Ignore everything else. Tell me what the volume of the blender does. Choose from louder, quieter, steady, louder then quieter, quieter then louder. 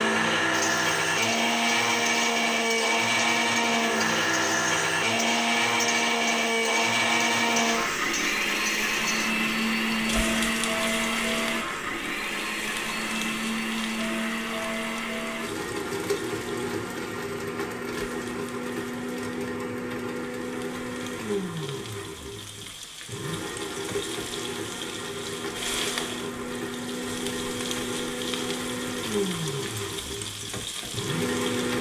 quieter.